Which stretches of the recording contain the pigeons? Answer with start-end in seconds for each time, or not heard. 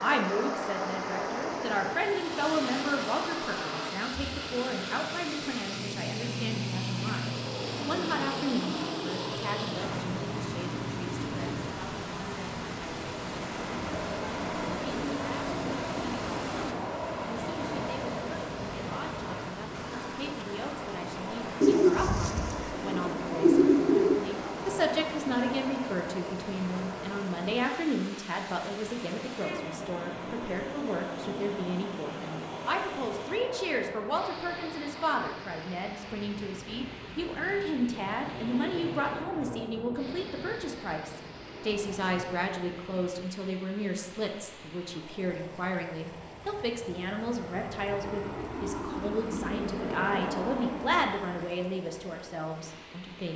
21.6-24.2.